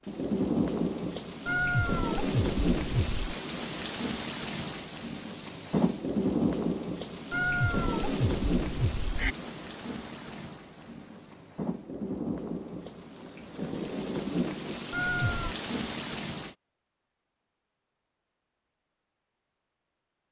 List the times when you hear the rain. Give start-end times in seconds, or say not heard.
0.1-16.6.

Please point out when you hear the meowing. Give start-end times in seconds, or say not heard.
1.4-3.1, 7.3-9.3, 14.9-15.6.